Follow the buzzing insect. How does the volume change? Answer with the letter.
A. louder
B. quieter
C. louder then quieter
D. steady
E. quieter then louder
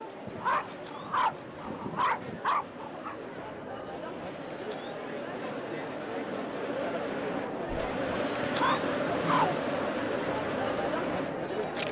A.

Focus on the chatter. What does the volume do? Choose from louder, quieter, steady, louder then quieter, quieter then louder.
louder.